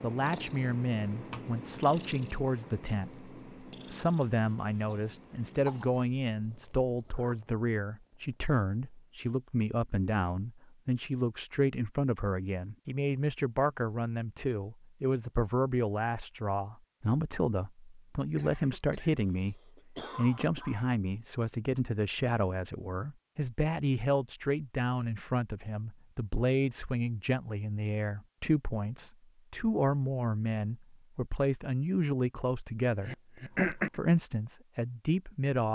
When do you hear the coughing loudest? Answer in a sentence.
The loudest moment of the coughing is at 34 seconds.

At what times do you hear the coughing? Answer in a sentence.
The coughing can be heard from 4.2 to 6.0 s, from 18.4 to 20.9 s and from 33.0 to 34.0 s.